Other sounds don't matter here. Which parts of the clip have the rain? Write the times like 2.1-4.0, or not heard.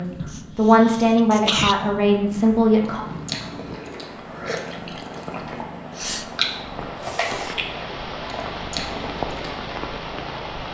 2.1-10.7.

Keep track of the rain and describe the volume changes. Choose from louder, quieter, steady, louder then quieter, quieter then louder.
louder.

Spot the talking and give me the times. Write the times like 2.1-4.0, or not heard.
0.0-3.0.